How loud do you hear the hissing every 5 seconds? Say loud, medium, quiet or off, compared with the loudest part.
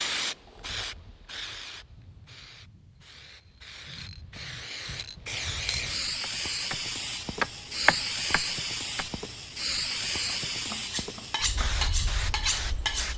medium, loud, loud.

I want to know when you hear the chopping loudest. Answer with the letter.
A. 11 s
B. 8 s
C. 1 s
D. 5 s
B.